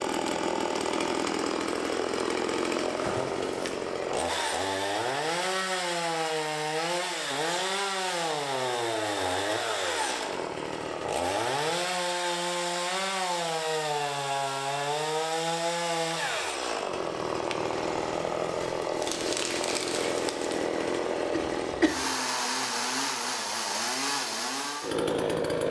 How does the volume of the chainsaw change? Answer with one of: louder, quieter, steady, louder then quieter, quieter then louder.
steady.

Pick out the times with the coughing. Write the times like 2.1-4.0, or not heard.
21.3-22.1.